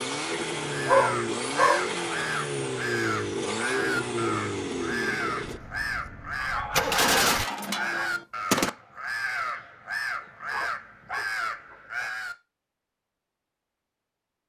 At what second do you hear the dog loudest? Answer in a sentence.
The volume of the dog peaks at 1 second.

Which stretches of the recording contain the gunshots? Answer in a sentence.
You can hear the gunshots from 6.7 to 8.7 s.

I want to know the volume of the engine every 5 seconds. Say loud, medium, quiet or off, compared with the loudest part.
loud, loud, off.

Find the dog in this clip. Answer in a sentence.
The dog can be heard from 0.8 to 1.9 s, from 6.3 to 8.1 s and from 10.2 to 12.1 s.